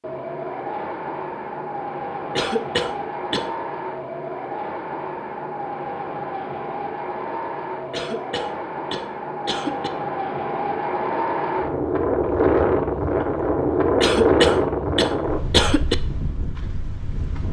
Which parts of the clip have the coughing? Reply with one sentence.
The coughing can be heard from 2.4 to 3.5 s, from 7.9 to 9.9 s and from 14.0 to 15.9 s.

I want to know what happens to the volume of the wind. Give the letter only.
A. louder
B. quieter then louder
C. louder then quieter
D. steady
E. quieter
A.